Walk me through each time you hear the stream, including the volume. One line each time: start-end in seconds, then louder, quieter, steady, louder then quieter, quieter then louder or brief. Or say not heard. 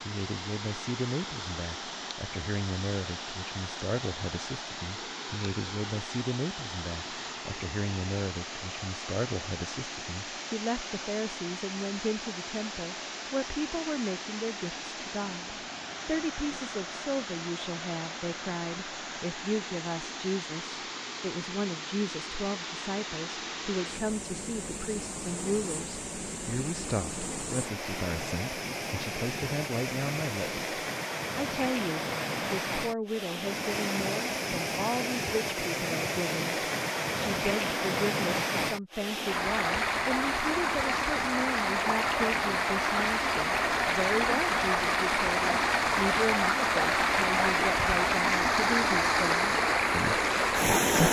0.0-51.0 louder.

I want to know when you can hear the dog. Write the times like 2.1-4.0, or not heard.
not heard.